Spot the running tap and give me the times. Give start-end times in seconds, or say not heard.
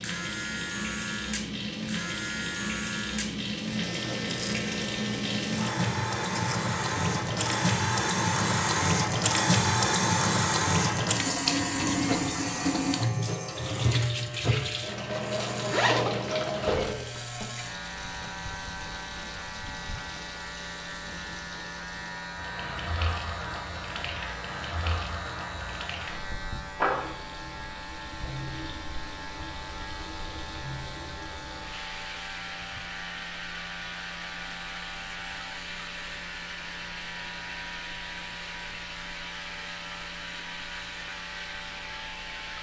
0.0-42.5.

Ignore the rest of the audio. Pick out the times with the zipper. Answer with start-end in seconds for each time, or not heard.
15.7-16.9.